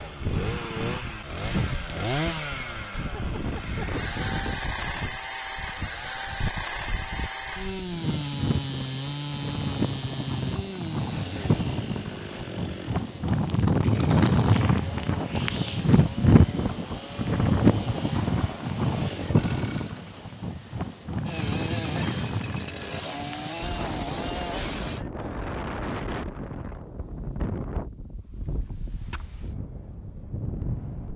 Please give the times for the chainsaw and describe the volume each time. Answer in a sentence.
You can hear the chainsaw from 0.0 to 25.1 s, getting quieter then louder.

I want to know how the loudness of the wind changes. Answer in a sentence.
The loudness of the wind goes up, then down.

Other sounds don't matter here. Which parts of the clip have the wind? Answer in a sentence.
The wind can be heard from 0.1 to 31.1 s.